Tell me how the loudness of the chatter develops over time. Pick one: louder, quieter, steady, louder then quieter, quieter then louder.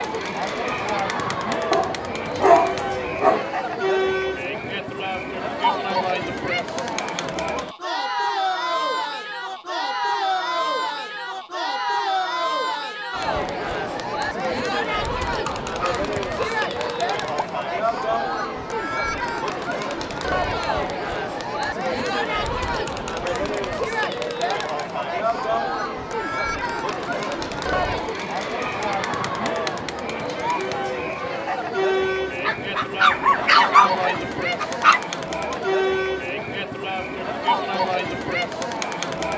steady.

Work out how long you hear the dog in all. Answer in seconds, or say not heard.
6 s.